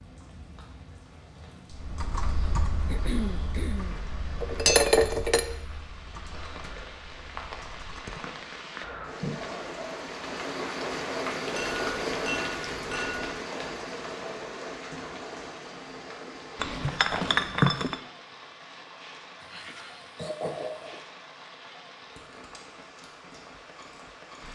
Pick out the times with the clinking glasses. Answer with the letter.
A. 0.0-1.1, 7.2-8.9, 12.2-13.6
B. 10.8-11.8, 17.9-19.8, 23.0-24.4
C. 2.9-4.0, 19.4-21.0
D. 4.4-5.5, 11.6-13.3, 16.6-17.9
D.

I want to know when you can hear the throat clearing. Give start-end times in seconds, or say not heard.
2.9-4.0, 19.4-21.0.